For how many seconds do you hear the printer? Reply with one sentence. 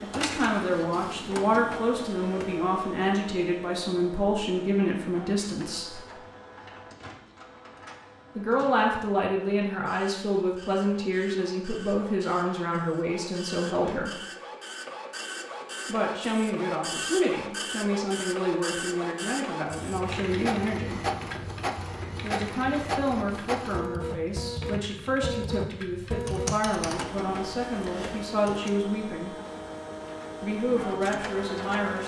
The printer can be heard for 32 seconds in total.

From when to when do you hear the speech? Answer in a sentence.
The speech can be heard from 0.0 to 6.0 s, from 8.3 to 14.2 s, from 15.8 to 21.1 s, from 22.2 to 29.4 s and from 30.4 to 32.0 s.